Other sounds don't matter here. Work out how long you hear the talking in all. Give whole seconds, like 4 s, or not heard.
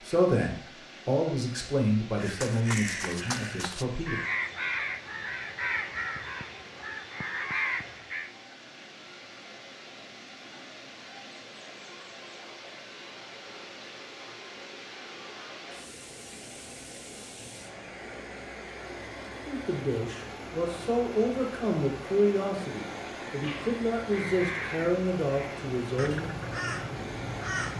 11 s.